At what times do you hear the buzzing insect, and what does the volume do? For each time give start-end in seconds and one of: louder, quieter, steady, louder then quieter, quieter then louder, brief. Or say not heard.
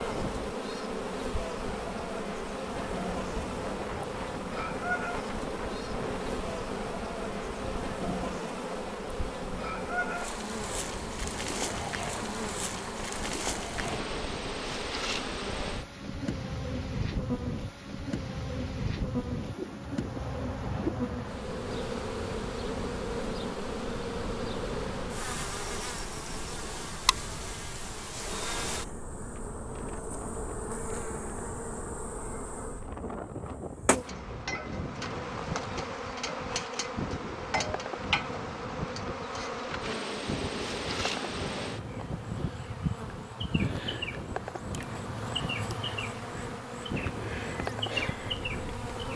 0.0-49.1 steady.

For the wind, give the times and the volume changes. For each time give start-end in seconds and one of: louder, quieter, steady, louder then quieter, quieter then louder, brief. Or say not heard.
0.0-49.0 steady.